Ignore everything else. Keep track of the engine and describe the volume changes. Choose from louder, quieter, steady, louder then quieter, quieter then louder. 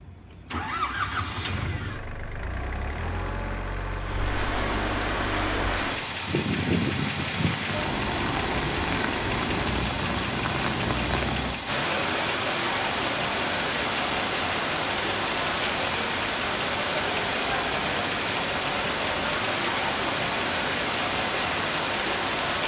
steady.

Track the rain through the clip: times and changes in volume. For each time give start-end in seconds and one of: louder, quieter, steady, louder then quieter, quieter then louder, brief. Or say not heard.
4.0-22.6 steady.